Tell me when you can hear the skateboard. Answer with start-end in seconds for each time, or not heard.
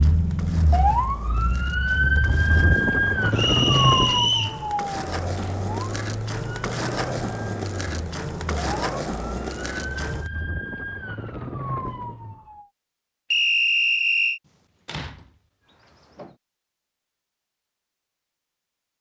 0.0-10.3.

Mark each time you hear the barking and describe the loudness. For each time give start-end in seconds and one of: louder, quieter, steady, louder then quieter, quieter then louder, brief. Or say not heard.
not heard.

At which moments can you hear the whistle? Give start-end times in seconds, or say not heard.
3.4-4.6, 13.3-14.4.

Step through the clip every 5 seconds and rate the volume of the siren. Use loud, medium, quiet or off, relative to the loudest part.
loud, quiet, medium, off.